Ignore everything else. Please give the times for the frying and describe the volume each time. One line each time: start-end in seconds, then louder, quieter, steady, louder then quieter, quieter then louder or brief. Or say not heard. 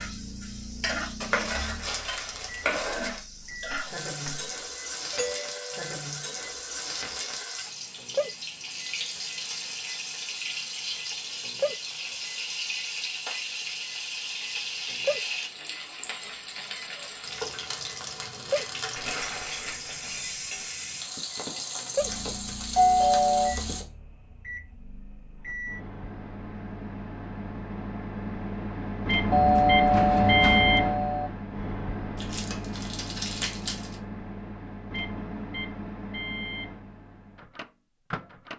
0.0-23.9 steady.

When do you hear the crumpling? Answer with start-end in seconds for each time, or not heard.
1.2-3.2, 18.9-20.7, 32.1-34.0.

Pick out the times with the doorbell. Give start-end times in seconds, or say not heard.
5.1-5.9, 22.8-23.6, 29.3-31.3.